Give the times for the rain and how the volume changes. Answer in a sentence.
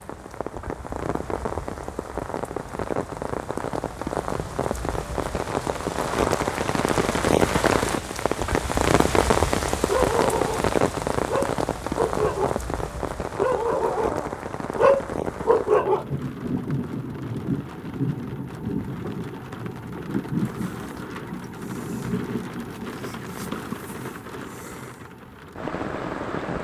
You can hear the rain from 0.0 to 26.5 s, getting louder then quieter.